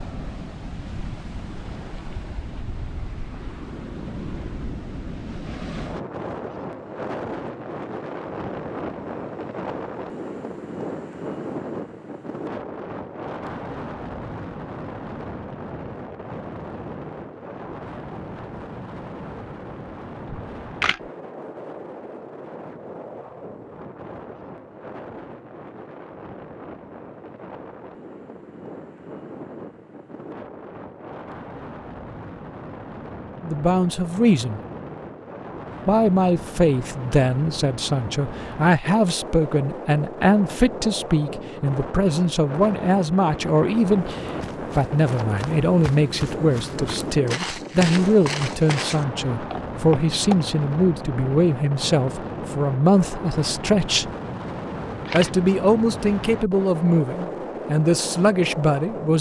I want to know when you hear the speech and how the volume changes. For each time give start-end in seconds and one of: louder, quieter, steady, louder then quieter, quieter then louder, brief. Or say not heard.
33.4-34.6 brief
35.9-54.1 steady
55.1-59.1 steady.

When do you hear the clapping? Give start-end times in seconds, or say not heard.
not heard.